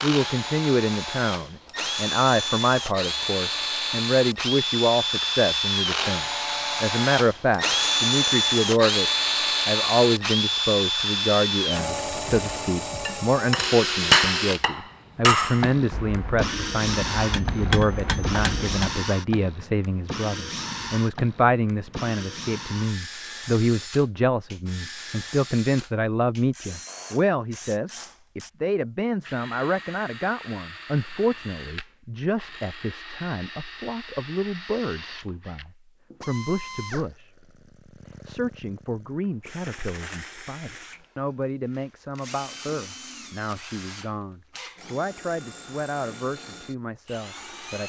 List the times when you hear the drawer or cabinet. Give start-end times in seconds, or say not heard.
not heard.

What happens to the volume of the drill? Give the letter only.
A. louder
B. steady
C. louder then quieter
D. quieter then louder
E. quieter
E.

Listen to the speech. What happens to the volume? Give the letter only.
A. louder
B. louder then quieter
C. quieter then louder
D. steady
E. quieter
E.